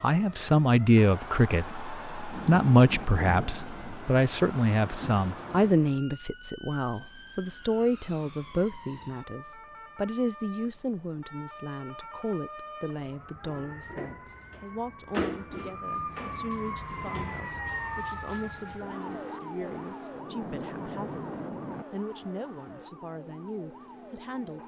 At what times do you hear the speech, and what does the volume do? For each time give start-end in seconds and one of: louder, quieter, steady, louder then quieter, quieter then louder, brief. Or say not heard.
0.0-24.6 quieter.